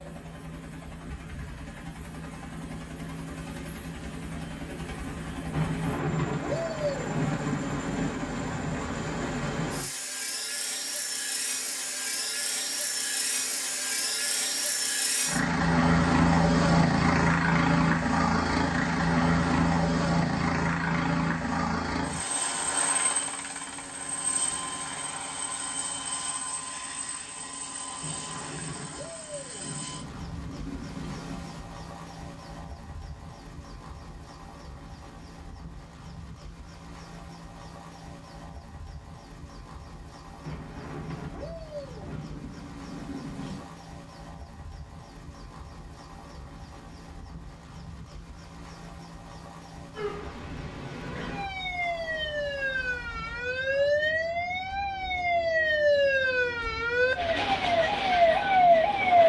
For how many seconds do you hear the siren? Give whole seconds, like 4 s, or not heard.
9 s.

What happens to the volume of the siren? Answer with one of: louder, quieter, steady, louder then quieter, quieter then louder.
louder.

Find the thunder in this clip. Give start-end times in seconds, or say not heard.
5.5-8.2, 28.0-31.6, 40.4-43.8.